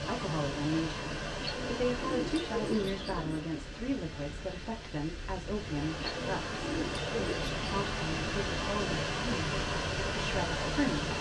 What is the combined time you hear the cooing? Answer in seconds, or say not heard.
4 s.